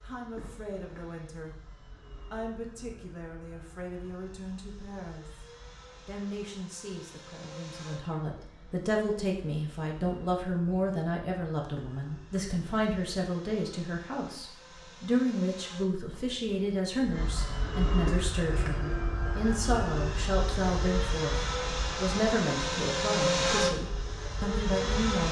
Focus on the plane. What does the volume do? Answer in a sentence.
The loudness of the plane goes up.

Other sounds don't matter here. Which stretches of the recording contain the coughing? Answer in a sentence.
You can hear the coughing from 0.3 to 1.1 s, from 11.8 to 12.5 s and from 18.1 to 18.8 s.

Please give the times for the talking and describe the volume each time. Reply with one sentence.
You can hear the talking from 0.0 to 25.2 s, getting louder.